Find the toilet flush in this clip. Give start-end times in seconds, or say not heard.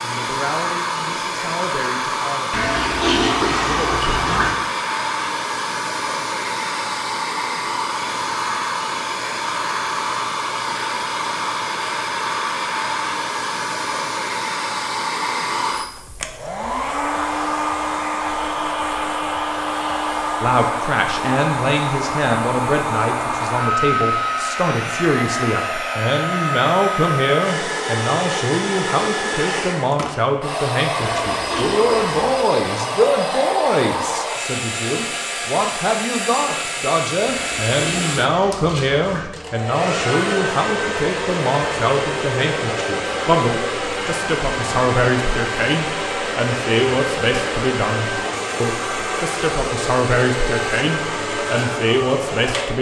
2.5-4.5, 31.0-32.2, 37.2-39.3.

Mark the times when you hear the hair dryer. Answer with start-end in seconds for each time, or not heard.
0.0-52.7.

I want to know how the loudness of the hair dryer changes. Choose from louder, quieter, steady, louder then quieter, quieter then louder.
steady.